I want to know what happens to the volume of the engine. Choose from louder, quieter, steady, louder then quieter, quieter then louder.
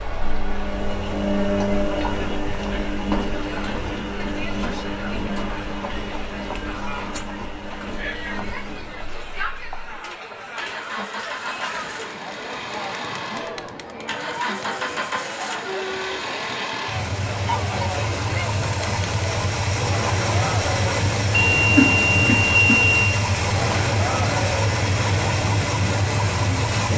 quieter then louder.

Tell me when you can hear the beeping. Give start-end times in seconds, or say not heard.
21.3-23.2.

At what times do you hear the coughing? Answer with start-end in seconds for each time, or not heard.
21.8-22.8.